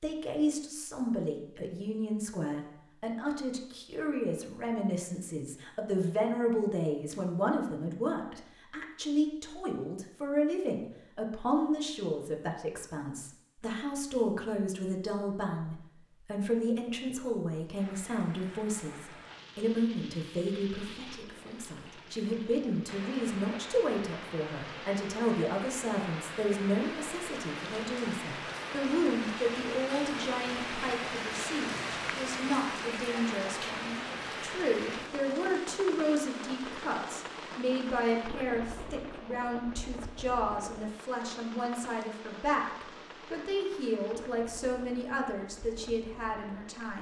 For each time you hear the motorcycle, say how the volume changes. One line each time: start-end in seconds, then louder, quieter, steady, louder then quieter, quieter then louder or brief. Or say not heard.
not heard.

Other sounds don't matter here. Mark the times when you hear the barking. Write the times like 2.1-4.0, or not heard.
not heard.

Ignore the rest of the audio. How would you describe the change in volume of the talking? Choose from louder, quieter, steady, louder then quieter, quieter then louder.
steady.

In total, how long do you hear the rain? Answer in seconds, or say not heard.
29 s.